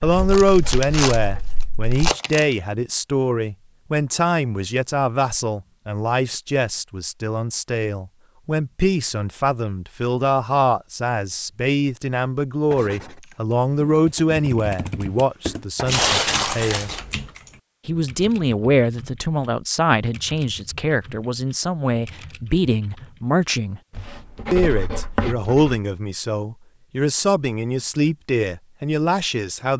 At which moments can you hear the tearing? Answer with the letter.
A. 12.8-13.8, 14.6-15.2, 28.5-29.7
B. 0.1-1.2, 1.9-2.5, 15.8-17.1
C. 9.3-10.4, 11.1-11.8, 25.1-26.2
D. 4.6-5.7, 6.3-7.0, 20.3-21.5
B.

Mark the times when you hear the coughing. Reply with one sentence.
The coughing can't be heard in this clip.